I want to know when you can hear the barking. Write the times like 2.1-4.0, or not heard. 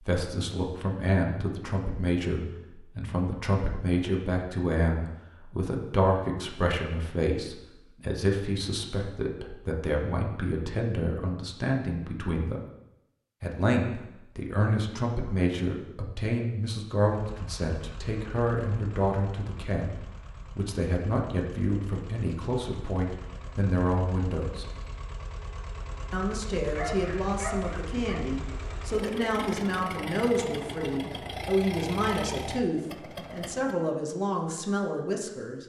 26.8-28.2.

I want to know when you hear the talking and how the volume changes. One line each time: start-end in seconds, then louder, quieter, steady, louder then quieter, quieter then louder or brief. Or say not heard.
0.0-12.6 steady
13.4-24.8 steady
26.1-35.6 steady.